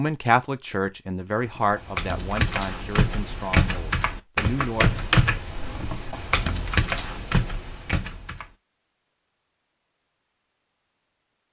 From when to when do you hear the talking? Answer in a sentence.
The talking can be heard from 0.0 to 5.0 s.